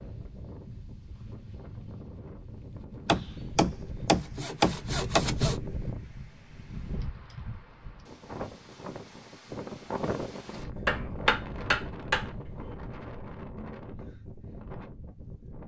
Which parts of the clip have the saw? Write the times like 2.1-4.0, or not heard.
3.0-5.6.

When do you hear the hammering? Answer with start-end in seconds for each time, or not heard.
10.8-12.7.